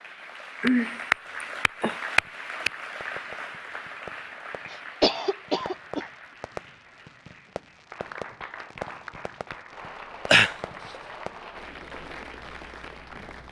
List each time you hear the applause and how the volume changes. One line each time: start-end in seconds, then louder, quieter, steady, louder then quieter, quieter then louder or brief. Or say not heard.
0.0-13.4 quieter then louder.